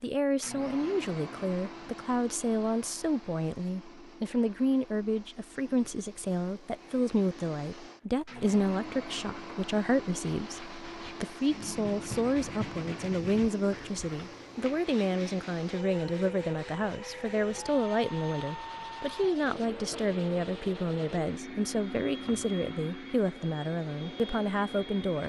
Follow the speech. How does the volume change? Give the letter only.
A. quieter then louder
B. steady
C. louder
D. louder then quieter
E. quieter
B.